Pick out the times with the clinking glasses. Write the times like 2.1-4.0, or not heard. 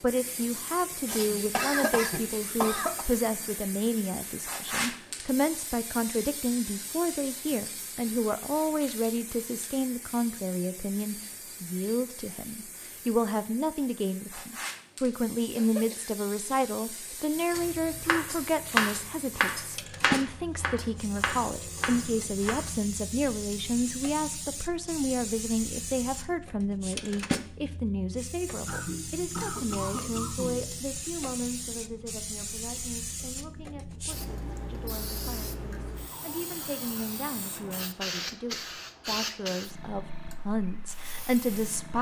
not heard.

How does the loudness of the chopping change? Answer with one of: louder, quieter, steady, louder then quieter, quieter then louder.
quieter.